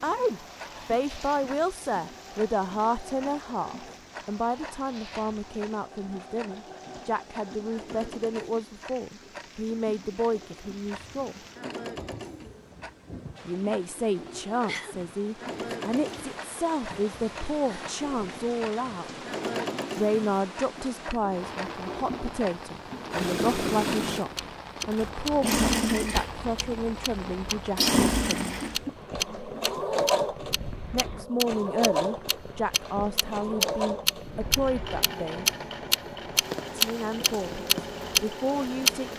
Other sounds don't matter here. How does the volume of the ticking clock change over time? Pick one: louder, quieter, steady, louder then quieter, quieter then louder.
louder.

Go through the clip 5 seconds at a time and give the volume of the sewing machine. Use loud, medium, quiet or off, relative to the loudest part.
quiet, quiet, quiet, medium, loud, loud, loud, medium.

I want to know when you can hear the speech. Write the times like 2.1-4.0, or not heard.
0.0-11.4, 13.4-19.1, 19.9-28.7, 30.9-35.5, 36.8-39.1.